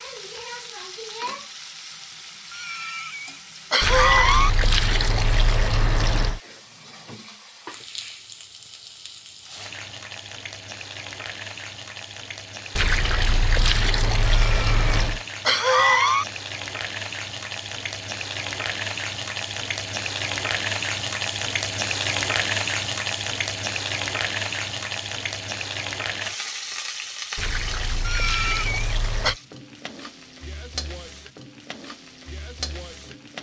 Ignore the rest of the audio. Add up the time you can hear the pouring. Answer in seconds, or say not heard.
7 s.